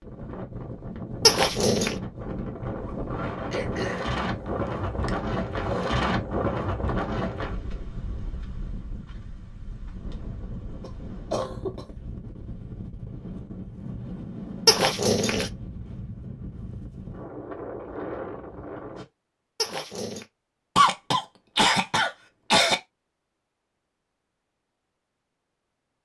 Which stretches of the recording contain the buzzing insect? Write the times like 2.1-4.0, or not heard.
not heard.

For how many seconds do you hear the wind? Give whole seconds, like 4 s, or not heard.
19 s.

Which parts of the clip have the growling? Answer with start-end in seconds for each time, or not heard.
1.2-1.9, 14.7-15.5, 19.6-20.2.